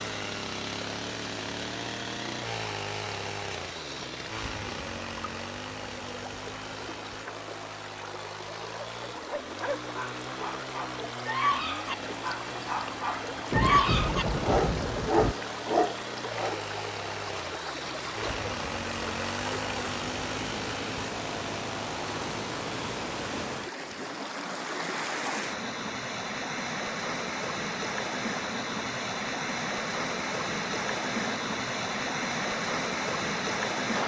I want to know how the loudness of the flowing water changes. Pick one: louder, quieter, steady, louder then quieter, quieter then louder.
louder.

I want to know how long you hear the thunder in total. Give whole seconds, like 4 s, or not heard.
2 s.